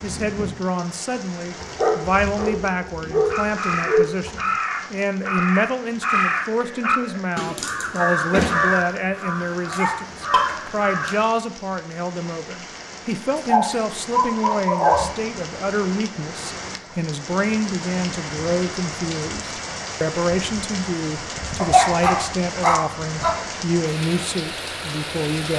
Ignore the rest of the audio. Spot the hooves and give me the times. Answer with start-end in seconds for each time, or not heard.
not heard.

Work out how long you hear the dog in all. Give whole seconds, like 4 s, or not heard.
7 s.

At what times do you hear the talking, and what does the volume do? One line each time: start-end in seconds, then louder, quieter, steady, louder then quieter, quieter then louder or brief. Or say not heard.
0.0-25.5 steady.